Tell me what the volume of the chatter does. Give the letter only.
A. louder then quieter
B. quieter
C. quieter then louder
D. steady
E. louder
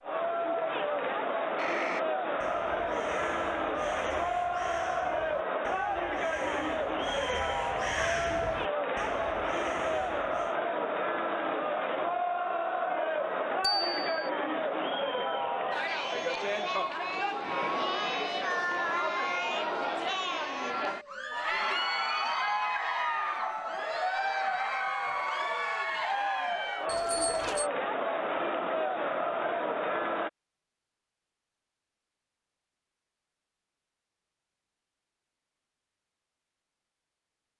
D.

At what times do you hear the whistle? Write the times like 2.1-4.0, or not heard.
not heard.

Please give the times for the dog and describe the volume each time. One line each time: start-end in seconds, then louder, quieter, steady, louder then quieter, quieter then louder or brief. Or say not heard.
not heard.